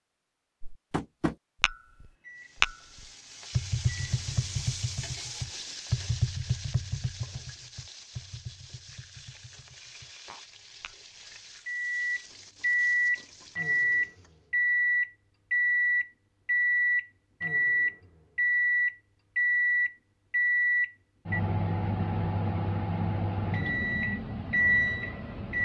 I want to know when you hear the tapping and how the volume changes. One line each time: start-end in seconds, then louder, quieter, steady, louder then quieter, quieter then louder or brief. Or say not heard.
0.6-10.9 quieter.